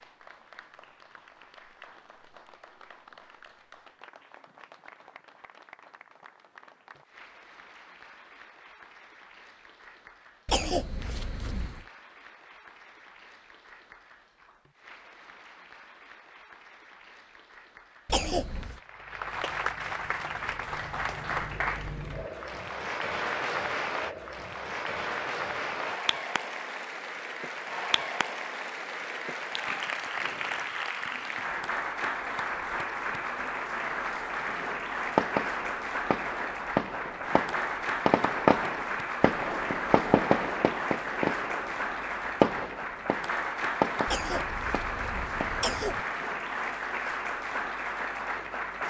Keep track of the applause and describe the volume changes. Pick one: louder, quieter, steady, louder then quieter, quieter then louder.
louder.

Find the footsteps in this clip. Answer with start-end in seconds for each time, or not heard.
not heard.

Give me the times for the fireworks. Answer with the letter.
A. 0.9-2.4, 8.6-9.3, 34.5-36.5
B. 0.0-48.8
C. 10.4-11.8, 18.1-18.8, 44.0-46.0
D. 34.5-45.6
D.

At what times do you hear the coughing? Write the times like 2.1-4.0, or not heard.
10.4-11.8, 18.1-18.8, 44.0-46.0.